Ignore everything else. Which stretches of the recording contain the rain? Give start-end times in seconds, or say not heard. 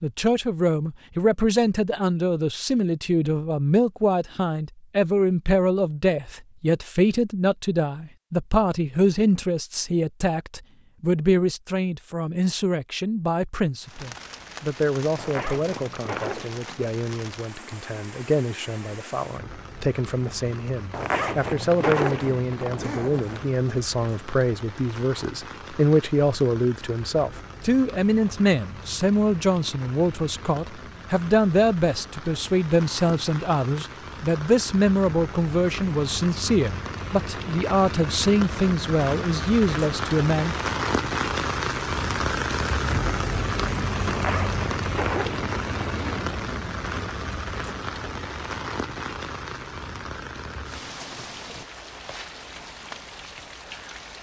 13.8-54.1.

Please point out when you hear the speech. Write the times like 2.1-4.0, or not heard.
0.0-40.5.